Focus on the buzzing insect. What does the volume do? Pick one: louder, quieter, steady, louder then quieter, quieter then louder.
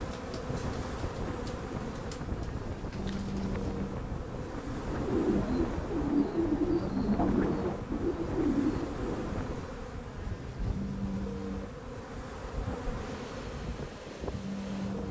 steady.